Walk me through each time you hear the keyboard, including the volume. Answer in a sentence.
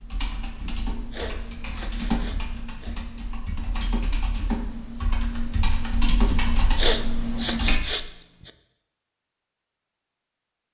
You can hear the keyboard from 0.0 to 7.8 s, getting louder.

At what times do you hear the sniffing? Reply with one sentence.
You can hear the sniffing from 0.7 to 3.0 s and from 6.3 to 8.5 s.